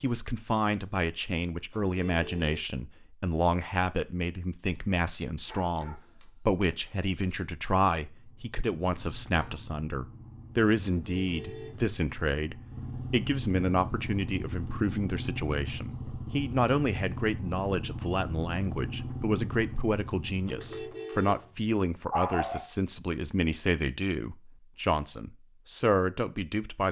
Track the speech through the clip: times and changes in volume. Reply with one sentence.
The speech can be heard from 0.0 to 26.8 s, at a steady volume.